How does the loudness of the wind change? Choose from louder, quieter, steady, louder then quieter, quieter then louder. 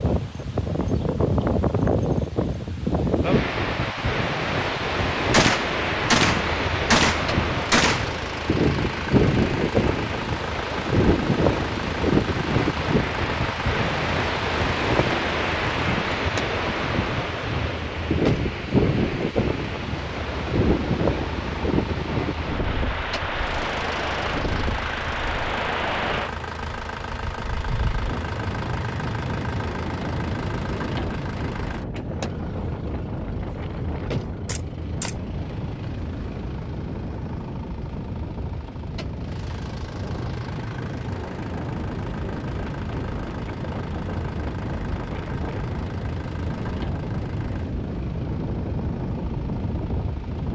quieter.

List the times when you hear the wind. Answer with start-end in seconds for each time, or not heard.
0.0-50.5.